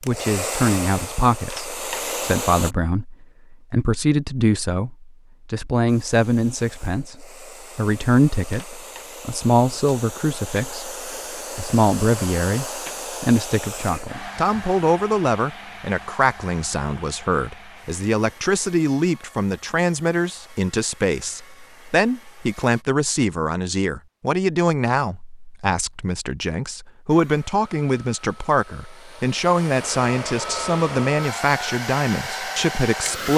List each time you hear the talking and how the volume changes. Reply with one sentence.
You can hear the talking from 0.1 to 33.3 s, at a steady volume.